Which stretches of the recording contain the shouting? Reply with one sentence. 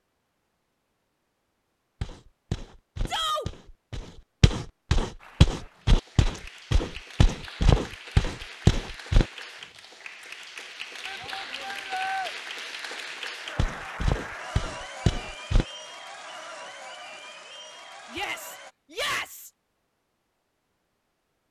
The shouting can be heard from 3.0 to 3.5 s, from 11.1 to 12.3 s and from 18.1 to 19.5 s.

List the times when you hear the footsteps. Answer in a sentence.
The footsteps can be heard from 2.0 to 9.2 s and from 13.6 to 15.7 s.